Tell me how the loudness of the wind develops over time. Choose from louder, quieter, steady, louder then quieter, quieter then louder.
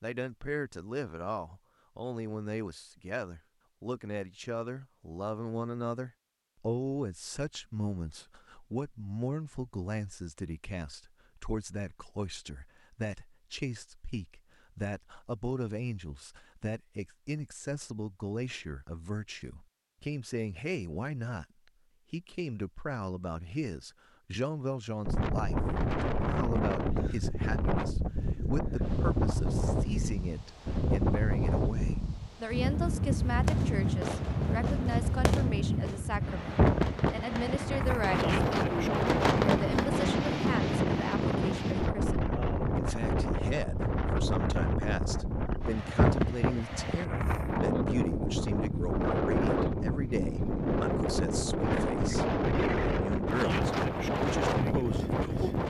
steady.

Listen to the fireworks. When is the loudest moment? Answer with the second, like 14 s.
39 s.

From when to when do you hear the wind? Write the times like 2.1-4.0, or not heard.
25.1-55.6.